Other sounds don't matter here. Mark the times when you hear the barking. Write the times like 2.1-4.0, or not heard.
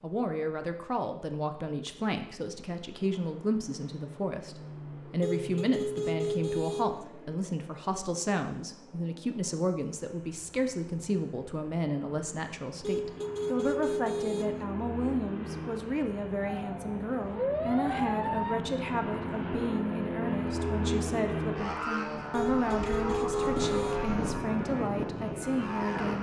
not heard.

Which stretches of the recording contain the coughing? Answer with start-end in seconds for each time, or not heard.
not heard.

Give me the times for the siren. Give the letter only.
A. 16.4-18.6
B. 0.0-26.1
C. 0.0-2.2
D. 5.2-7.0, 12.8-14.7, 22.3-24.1
A.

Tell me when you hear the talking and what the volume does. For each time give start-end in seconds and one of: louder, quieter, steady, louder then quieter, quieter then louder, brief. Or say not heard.
0.0-26.1 steady.